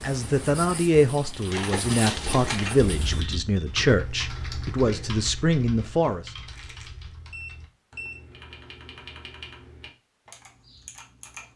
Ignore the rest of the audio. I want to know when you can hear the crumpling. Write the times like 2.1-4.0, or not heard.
1.5-2.9, 6.5-7.1.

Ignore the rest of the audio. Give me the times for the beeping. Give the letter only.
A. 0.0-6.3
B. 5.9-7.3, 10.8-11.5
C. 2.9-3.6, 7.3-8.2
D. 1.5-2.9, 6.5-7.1
C.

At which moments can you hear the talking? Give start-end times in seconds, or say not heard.
0.0-6.3.